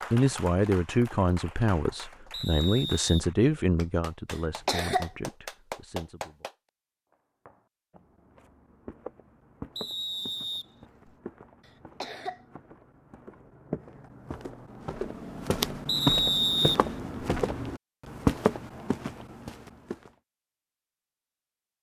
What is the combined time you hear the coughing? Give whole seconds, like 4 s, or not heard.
2 s.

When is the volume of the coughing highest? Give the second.
5 s.